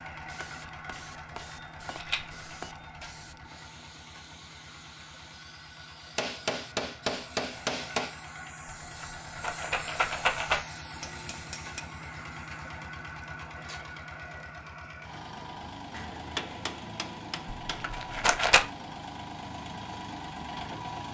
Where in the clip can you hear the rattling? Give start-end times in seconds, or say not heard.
1.9-2.6, 8.8-10.6, 17.6-18.6.